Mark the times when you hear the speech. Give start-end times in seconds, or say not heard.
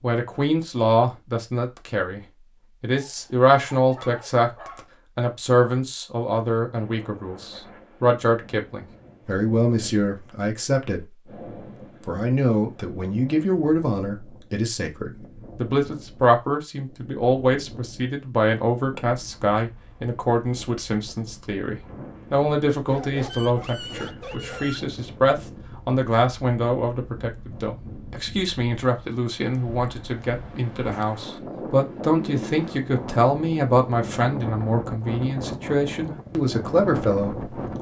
0.0-2.2, 2.8-11.3, 12.1-37.5.